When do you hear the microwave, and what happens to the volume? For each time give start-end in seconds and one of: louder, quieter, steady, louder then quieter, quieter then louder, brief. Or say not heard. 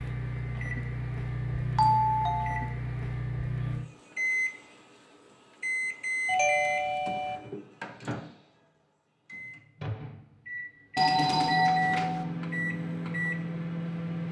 0.0-14.2 quieter then louder.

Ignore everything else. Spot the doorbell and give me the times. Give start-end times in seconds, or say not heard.
1.8-2.8, 6.2-7.4, 10.9-12.2.